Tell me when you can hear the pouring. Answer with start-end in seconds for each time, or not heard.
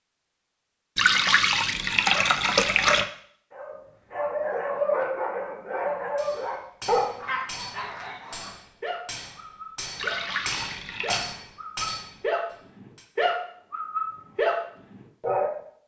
0.9-3.0, 9.9-11.2.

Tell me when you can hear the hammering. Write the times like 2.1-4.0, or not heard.
6.2-13.1.